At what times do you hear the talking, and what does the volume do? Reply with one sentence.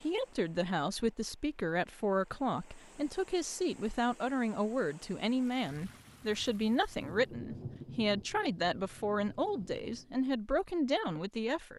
You can hear the talking from 0.0 to 11.7 s, at a steady volume.